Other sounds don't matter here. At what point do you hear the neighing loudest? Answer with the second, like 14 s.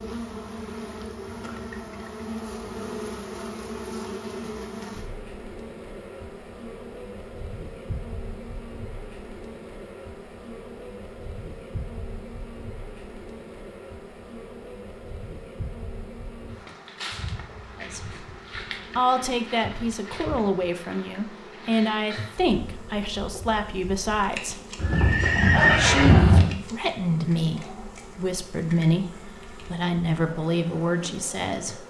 26 s.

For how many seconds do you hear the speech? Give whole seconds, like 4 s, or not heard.
12 s.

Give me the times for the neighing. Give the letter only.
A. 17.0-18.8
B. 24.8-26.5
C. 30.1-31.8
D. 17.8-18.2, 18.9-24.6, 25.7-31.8
B.